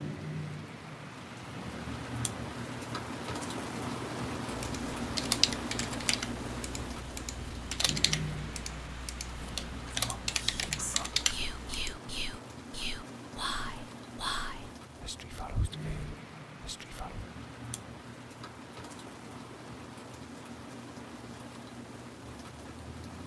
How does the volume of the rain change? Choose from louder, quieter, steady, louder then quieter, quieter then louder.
quieter.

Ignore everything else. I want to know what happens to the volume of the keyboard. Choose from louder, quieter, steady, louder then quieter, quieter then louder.
quieter then louder.